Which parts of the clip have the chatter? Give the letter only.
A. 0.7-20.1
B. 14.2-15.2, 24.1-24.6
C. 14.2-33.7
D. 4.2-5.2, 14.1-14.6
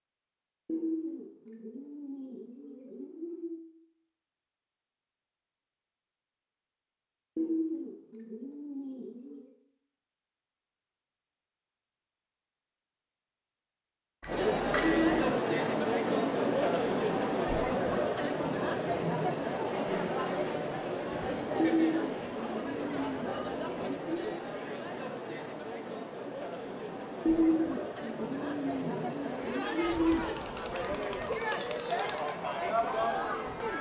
C.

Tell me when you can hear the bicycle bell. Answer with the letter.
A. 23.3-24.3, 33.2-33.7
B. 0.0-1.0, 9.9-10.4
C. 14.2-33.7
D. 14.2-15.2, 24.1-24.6
D.